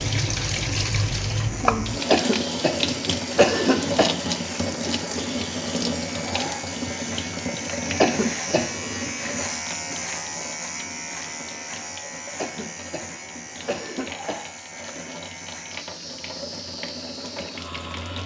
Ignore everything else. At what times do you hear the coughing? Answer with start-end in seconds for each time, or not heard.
2.1-4.1, 8.0-9.1, 12.3-14.4.